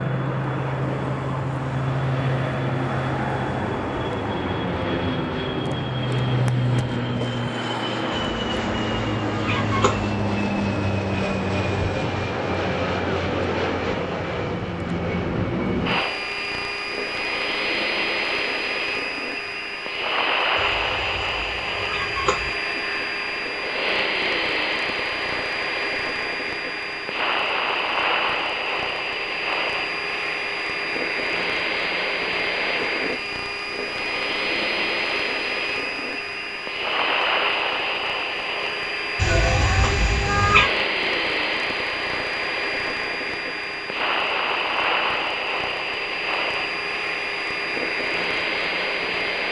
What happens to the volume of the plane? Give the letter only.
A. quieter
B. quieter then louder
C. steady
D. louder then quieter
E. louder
C.